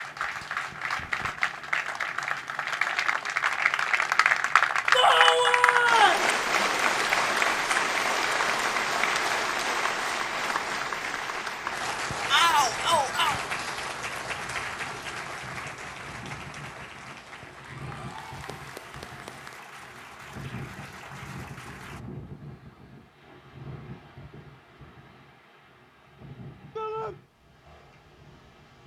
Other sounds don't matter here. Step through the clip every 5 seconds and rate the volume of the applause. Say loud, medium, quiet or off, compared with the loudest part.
loud, loud, medium, quiet, quiet, off.